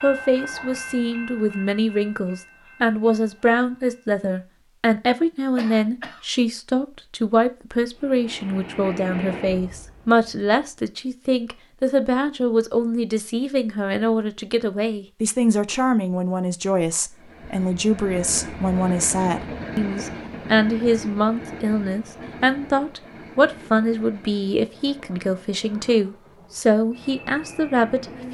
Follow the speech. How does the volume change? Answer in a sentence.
The volume of the speech stays about the same.